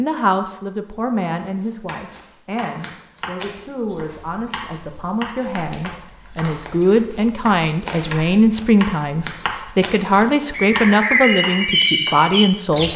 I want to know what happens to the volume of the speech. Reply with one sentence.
The loudness of the speech goes up.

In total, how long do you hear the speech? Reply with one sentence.
You can hear the speech for 13 seconds altogether.